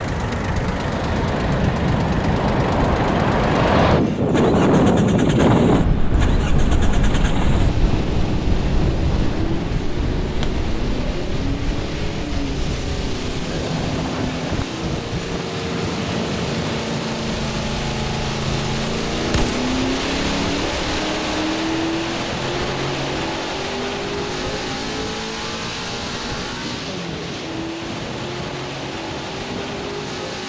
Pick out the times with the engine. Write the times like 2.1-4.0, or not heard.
0.0-30.4.